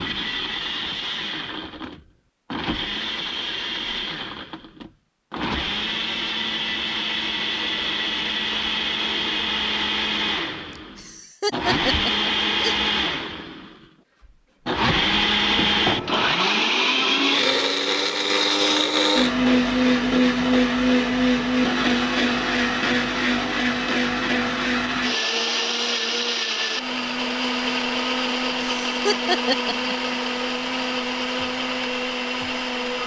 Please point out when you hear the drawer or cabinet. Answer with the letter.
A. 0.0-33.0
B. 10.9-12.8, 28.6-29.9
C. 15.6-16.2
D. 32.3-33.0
C.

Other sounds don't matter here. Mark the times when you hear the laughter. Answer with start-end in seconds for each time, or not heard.
10.9-12.8, 28.6-29.9.